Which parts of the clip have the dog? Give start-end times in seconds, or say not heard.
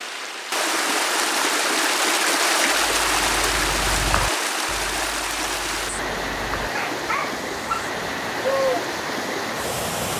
2.6-8.7.